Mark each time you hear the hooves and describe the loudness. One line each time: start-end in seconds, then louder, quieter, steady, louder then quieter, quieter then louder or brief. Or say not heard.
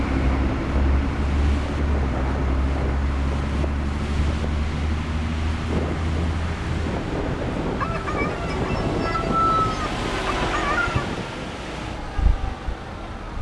not heard.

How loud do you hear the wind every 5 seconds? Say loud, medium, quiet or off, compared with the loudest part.
medium, loud, loud.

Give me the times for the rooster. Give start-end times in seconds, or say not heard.
7.8-11.2.